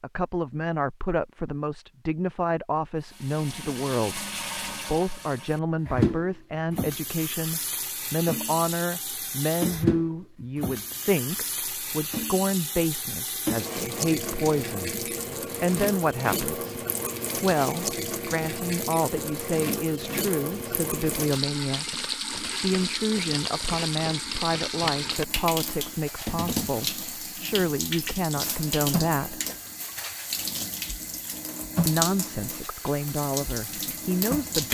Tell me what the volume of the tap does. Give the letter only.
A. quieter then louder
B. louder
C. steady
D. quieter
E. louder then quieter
C.